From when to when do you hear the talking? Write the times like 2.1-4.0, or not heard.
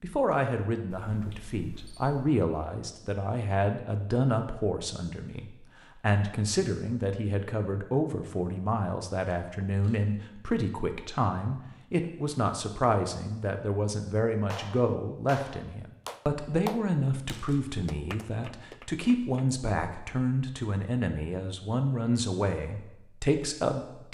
0.0-24.0.